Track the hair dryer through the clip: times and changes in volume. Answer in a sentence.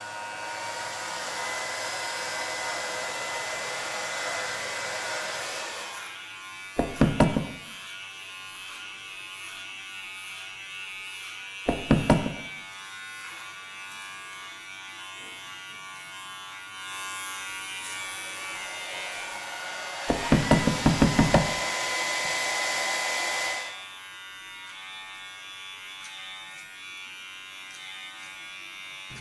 You can hear the hair dryer from 0.0 to 6.1 s, at a steady volume; and from 17.9 to 23.8 s, getting louder.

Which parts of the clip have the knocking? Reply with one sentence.
You can hear the knocking from 6.8 to 7.5 s, from 11.7 to 12.3 s and from 20.1 to 21.5 s.